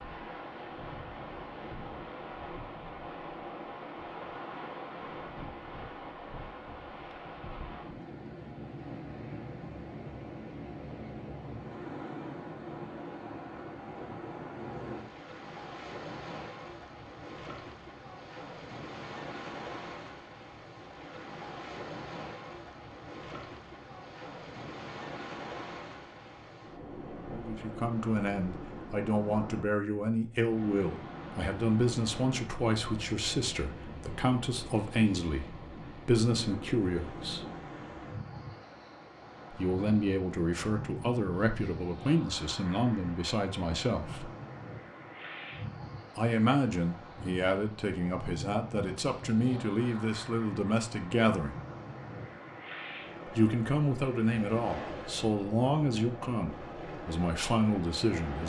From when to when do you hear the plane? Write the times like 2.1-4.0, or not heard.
not heard.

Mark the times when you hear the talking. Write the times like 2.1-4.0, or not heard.
27.3-37.5, 39.5-44.3, 46.1-51.5, 53.2-58.4.